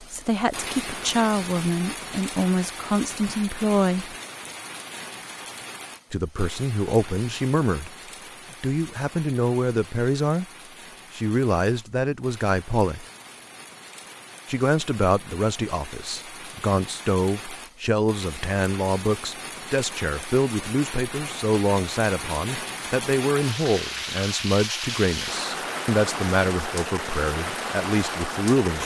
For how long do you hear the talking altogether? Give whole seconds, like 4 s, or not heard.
24 s.